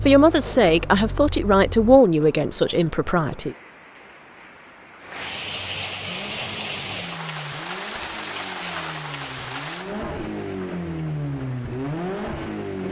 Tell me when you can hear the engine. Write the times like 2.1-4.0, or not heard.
0.0-2.0, 6.0-12.8.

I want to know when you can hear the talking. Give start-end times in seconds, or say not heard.
0.0-3.5.